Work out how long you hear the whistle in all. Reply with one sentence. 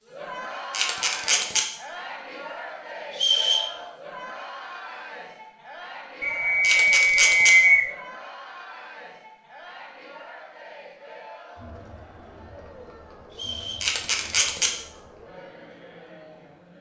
The whistle can be heard for 3 seconds in total.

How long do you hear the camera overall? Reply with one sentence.
You can hear the camera for 3 seconds altogether.